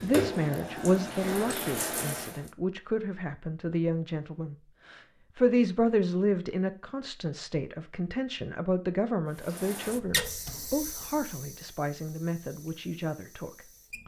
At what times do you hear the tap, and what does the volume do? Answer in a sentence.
You can hear the tap briefly from 0.0 to 2.5 s; and from 9.3 to 14.0 s, getting quieter.